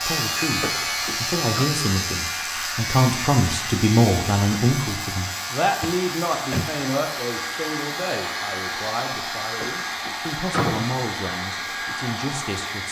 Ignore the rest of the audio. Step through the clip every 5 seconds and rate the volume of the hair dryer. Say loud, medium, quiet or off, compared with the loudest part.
medium, loud, loud.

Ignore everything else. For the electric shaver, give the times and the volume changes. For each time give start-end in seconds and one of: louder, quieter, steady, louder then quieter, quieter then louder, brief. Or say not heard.
0.0-12.7 quieter.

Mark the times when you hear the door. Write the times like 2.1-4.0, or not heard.
0.6-1.6, 5.8-6.8, 9.6-10.9.